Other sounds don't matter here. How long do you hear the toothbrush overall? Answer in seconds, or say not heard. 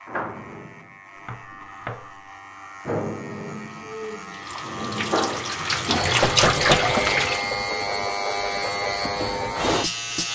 not heard.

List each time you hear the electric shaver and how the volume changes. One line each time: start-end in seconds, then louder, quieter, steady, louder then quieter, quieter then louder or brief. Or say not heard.
0.0-10.3 louder.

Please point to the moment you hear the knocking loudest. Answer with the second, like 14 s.
7 s.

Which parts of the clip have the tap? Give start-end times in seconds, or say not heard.
4.2-7.5.